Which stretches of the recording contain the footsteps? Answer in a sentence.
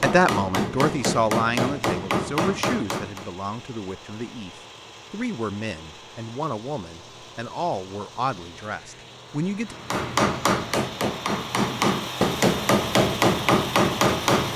The footsteps can't be heard in this clip.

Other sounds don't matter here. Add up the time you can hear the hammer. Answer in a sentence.
The hammer can be heard for 8 seconds in total.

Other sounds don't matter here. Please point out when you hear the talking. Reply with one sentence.
The talking can be heard from 0.0 to 9.8 s.